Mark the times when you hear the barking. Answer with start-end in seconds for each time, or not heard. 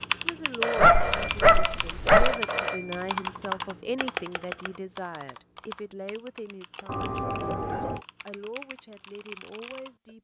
0.8-2.4.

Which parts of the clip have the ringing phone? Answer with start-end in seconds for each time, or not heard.
0.6-3.0, 6.8-8.0.